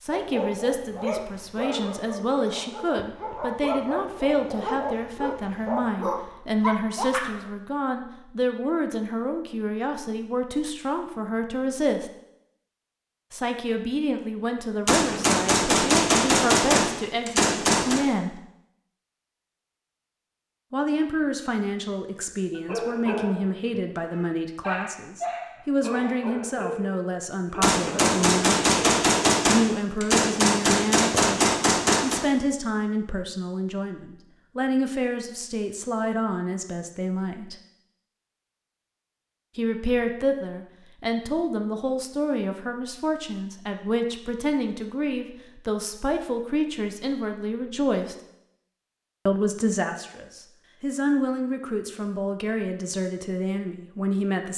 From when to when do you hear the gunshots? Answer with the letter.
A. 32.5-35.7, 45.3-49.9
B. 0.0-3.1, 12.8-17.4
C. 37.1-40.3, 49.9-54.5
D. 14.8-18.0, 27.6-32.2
D.